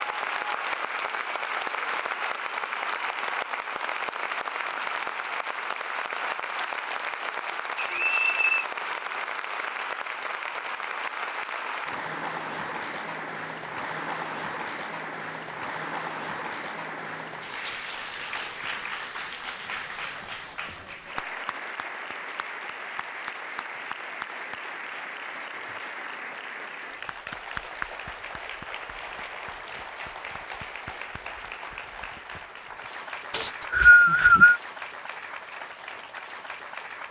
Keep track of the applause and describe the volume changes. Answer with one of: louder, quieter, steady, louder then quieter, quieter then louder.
quieter.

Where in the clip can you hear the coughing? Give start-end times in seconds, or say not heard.
not heard.